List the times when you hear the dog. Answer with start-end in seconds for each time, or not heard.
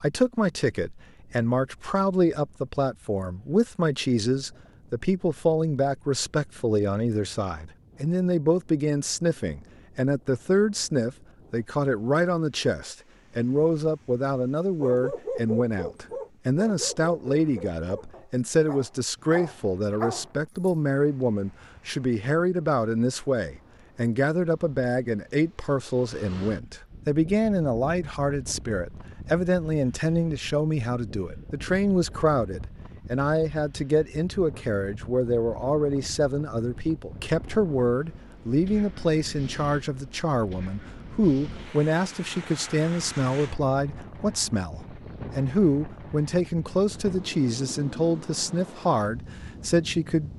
14.8-20.7.